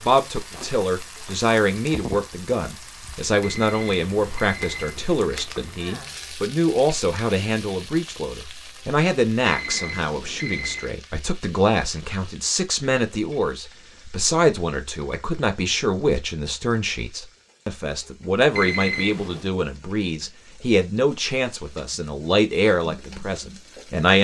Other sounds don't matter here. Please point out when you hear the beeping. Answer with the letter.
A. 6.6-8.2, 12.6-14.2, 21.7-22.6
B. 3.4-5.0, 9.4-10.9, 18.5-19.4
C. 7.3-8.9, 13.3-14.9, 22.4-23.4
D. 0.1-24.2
B.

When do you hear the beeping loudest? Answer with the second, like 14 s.
19 s.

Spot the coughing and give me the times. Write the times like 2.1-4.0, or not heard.
not heard.